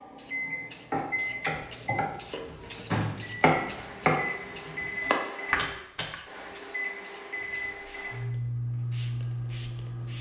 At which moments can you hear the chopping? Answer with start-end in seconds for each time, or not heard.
0.9-6.2.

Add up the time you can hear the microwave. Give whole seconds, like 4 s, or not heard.
10 s.